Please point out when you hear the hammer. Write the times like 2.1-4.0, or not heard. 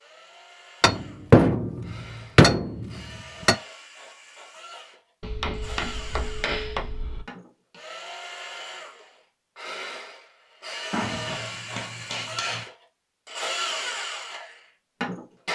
0.8-3.5, 5.2-7.2, 10.9-12.7.